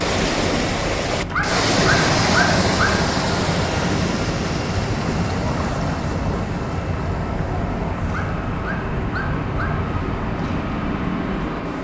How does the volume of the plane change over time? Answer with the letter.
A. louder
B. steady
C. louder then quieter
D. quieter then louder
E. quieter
B.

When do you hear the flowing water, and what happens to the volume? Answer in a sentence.
The flowing water can be heard from 0.0 to 11.7 s, getting quieter.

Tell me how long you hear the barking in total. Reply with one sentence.
You can hear the barking for 3 seconds altogether.